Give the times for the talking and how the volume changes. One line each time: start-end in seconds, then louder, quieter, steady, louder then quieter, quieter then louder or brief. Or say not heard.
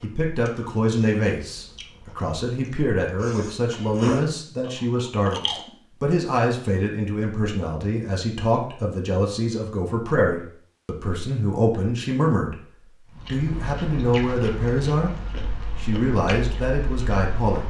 0.0-12.6 steady
13.2-15.2 brief
15.8-17.6 brief.